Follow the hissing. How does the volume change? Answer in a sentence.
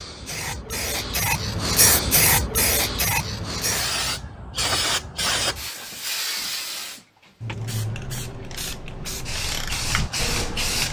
The loudness of the hissing goes down.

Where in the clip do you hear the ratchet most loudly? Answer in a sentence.
The volume of the ratchet peaks at 10 seconds.